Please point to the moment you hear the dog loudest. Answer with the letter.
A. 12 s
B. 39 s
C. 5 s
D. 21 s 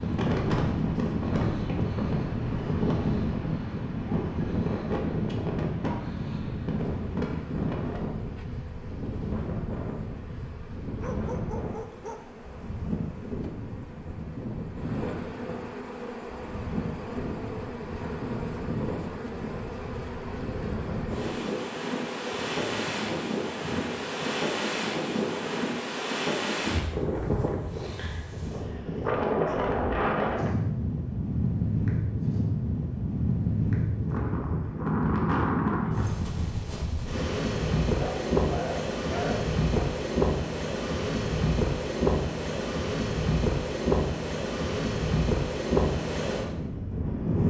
B.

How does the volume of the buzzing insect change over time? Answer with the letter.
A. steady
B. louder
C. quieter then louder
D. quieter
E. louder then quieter
B.